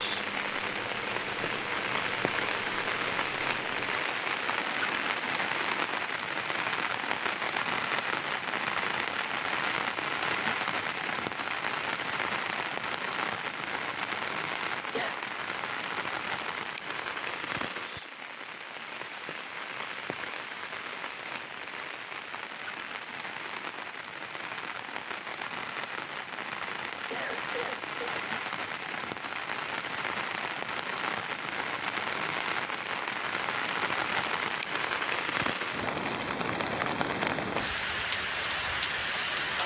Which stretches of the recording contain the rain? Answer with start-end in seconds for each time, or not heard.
0.0-39.6.